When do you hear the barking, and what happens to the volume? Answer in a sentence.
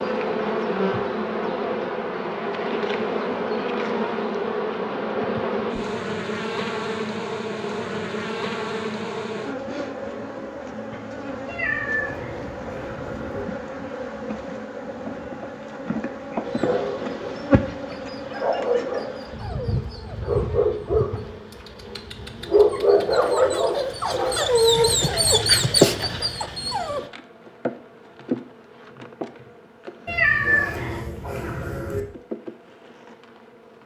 The barking can be heard from 16.4 to 27.1 s, getting louder.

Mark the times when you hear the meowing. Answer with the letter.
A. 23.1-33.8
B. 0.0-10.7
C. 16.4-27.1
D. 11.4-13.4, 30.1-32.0
D.